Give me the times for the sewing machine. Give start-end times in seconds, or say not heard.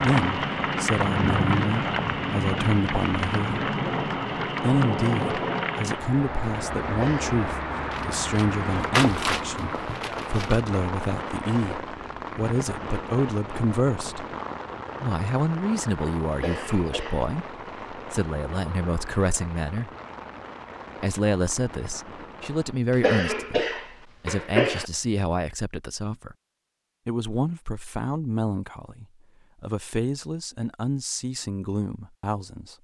not heard.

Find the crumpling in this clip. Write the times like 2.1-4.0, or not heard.
7.9-10.6.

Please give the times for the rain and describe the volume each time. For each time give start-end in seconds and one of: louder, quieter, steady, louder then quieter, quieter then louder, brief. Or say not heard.
0.0-22.8 quieter.